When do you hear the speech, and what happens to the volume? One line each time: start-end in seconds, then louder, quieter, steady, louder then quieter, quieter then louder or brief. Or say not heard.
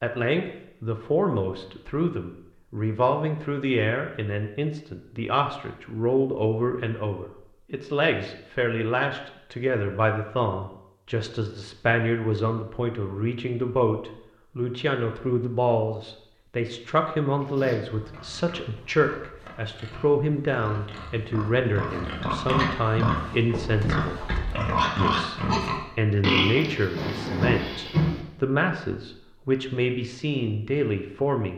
0.0-24.2 steady
24.9-31.5 steady.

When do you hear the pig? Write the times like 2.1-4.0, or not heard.
17.4-28.2.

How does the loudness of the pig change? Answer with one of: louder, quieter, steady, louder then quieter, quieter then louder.
louder.